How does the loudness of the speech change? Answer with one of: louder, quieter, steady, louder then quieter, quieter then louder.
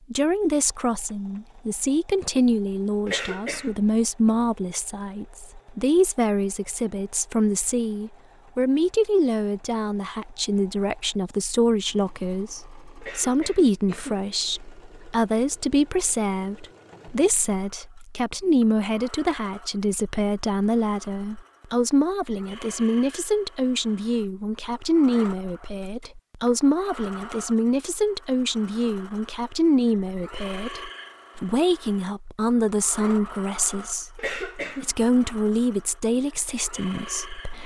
steady.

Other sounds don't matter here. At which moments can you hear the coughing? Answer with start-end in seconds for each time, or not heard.
3.0-3.8, 13.0-14.8, 34.1-35.1.